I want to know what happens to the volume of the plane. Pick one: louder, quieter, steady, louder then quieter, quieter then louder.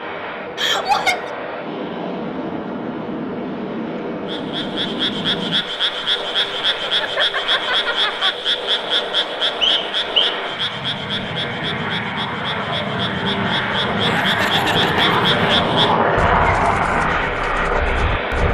louder.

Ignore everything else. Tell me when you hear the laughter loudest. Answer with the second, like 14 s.
1 s.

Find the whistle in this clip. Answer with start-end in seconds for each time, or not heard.
9.6-10.3.